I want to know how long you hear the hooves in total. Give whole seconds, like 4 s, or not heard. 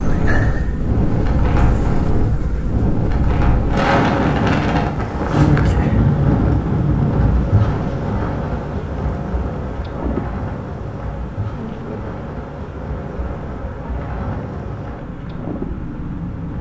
not heard.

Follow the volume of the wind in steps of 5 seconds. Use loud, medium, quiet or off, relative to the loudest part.
loud, loud, medium, medium.